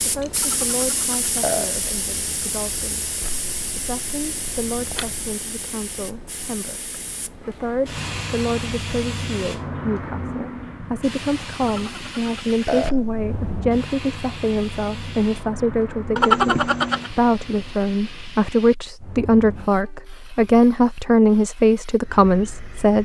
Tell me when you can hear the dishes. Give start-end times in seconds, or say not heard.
not heard.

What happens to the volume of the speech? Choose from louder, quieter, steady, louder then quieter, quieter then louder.
louder.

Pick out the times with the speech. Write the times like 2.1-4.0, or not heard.
0.0-23.0.